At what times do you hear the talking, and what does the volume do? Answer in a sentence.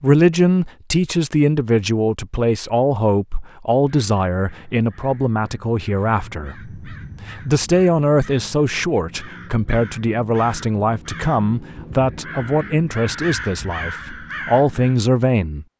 You can hear the talking from 0.0 to 15.7 s, at a steady volume.